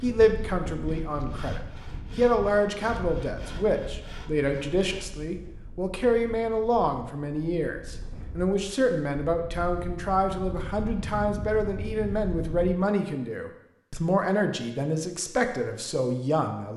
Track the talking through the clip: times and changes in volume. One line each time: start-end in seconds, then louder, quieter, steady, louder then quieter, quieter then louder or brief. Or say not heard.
0.0-16.7 steady.